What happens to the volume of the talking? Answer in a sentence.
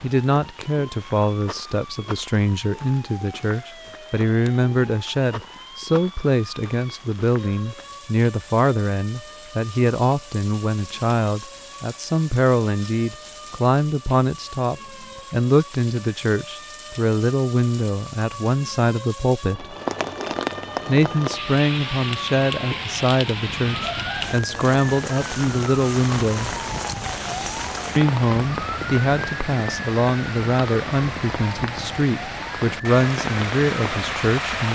The volume of the talking stays about the same.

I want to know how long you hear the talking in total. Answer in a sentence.
You can hear the talking for 32 seconds altogether.